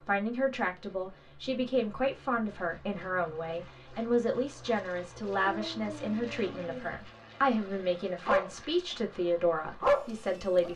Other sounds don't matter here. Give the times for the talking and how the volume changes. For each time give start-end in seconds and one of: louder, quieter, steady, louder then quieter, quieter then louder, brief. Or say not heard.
0.1-10.7 steady.